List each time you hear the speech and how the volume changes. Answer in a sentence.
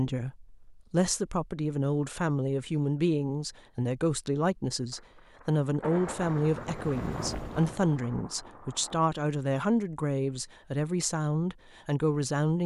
The speech can be heard from 0.0 to 12.6 s, at a steady volume.